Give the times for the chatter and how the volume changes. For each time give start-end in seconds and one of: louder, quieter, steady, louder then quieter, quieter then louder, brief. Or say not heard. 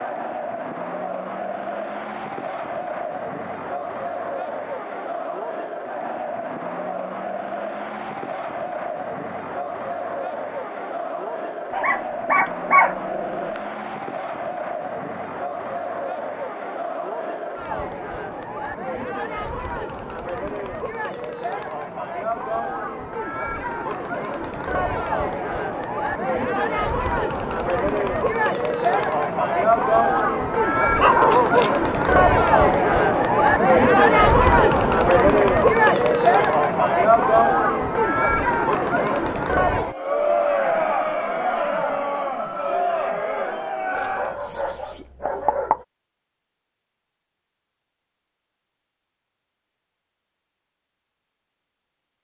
0.0-44.4 louder.